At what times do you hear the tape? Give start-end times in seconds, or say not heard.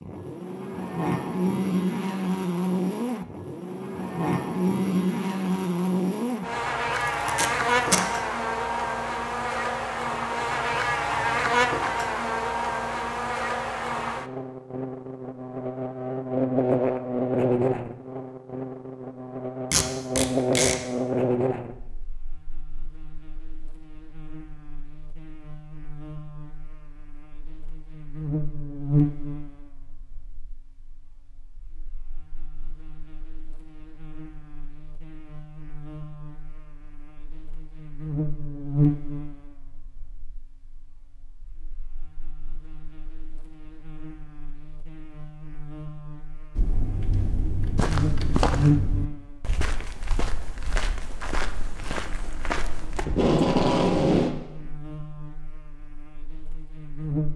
7.2-8.1, 19.7-20.8, 53.0-54.4.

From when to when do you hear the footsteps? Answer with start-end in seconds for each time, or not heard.
46.5-53.0.